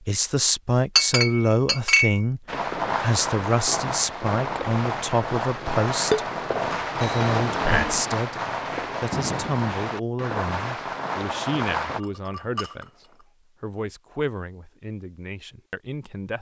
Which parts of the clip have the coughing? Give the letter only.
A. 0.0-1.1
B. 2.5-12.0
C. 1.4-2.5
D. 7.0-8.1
D.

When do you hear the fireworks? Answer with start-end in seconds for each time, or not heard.
2.5-12.0.